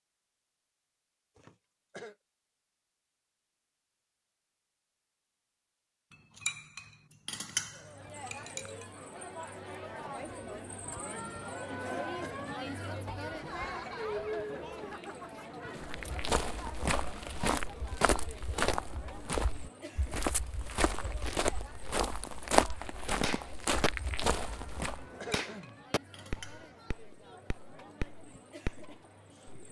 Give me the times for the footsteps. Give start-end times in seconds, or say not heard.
15.8-25.1.